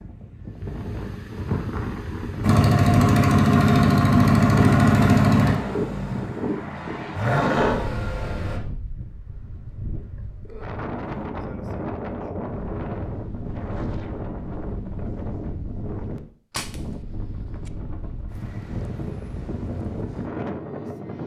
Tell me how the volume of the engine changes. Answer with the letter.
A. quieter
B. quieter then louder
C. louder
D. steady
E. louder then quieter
B.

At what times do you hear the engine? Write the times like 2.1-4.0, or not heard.
2.4-8.6.